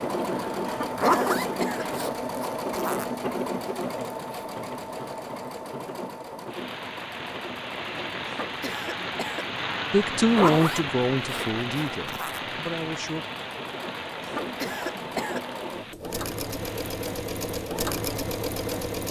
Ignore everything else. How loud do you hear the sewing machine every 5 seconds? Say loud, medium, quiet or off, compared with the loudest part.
loud, medium, medium, loud.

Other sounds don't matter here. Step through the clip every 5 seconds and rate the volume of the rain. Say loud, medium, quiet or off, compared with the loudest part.
off, loud, loud, medium.